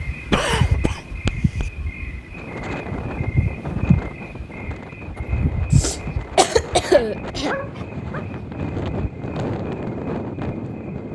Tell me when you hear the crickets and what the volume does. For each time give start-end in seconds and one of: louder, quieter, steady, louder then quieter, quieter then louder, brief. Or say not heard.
0.0-11.1 quieter.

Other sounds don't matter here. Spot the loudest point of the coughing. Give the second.
7 s.